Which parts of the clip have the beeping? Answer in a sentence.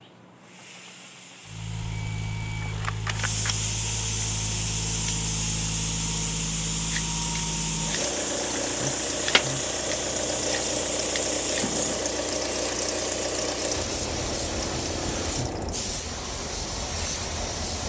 The beeping can be heard from 1.9 to 3.6 s.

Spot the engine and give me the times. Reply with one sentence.
The engine can be heard from 1.4 to 15.8 s.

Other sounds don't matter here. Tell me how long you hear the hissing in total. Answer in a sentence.
You can hear the hissing for 18 seconds altogether.